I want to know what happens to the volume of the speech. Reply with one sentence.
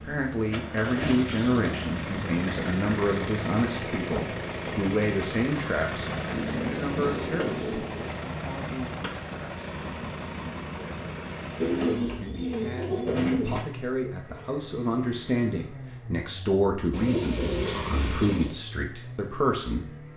The volume of the speech goes down, then up.